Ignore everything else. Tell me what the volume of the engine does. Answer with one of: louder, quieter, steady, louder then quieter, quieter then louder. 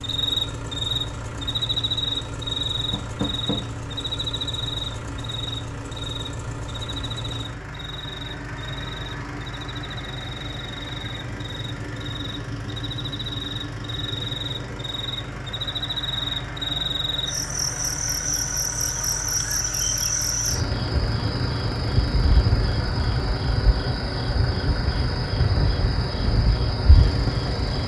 steady.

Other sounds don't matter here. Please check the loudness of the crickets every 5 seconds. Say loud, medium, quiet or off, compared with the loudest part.
loud, medium, medium, loud, loud, loud.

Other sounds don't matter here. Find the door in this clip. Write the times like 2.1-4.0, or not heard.
2.9-3.6.